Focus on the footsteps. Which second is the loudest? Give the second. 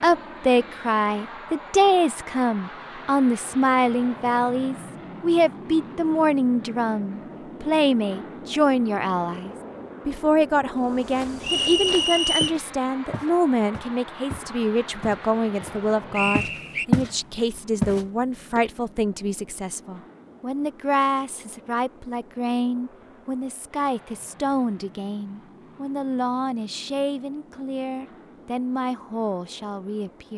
17 s.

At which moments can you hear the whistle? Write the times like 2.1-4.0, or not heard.
11.4-12.6, 16.1-16.9.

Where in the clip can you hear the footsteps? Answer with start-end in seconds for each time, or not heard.
10.8-17.1, 17.8-18.7.